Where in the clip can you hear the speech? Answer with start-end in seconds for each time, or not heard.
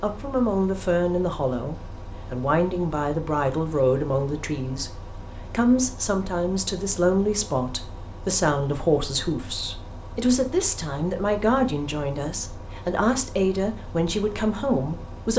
0.0-15.3.